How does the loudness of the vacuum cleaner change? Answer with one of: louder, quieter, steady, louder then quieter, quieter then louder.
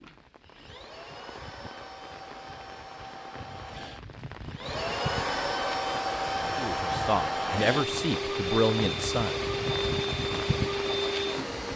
louder.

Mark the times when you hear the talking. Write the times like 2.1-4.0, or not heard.
6.5-9.3.